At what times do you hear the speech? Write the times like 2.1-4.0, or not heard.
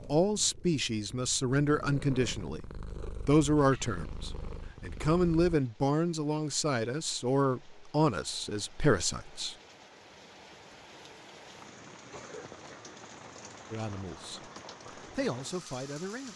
0.0-9.6, 13.7-16.3.